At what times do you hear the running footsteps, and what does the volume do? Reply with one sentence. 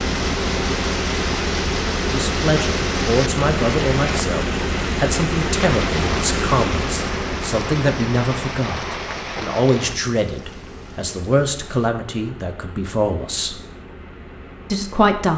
The running footsteps can't be heard in this clip.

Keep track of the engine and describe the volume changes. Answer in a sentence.
The volume of the engine goes down.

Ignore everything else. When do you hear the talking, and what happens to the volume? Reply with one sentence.
You can hear the talking from 2.1 to 13.6 s, at a steady volume; and briefly from 14.7 to 15.3 s.